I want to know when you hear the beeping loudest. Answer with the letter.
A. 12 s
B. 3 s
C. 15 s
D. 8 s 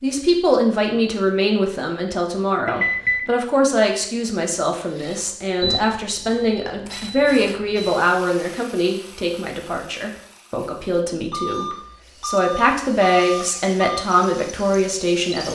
B.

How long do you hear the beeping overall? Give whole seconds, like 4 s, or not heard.
6 s.